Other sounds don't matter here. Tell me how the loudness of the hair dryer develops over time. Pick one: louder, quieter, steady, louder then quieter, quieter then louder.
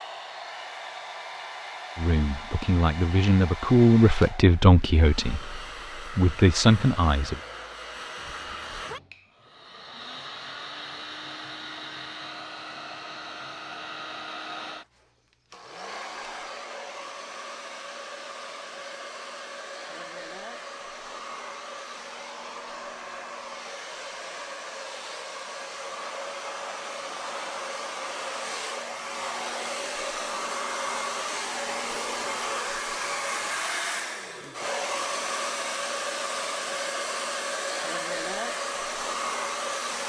louder.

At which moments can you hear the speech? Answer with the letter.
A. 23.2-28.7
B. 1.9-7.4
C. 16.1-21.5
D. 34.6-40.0
B.